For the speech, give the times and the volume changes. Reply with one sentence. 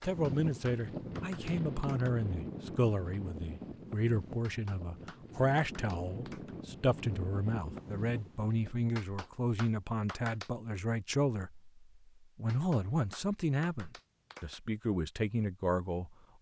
You can hear the speech from 0.0 to 16.1 s, at a steady volume.